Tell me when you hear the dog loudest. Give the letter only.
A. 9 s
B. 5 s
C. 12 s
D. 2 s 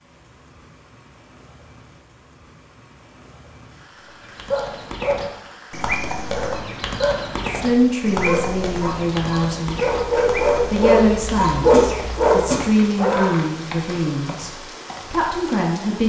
C.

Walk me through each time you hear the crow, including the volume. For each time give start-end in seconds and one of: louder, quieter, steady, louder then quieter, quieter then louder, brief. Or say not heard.
not heard.